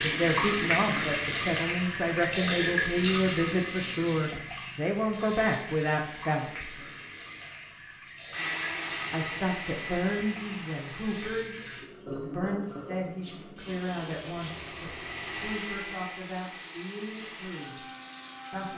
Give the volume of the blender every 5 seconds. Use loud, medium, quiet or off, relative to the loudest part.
off, loud, medium, medium.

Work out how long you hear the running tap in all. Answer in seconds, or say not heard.
19 s.